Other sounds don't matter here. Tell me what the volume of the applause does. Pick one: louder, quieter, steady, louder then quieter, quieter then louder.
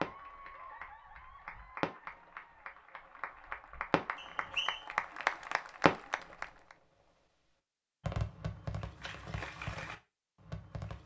louder.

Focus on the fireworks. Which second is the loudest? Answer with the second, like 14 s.
6 s.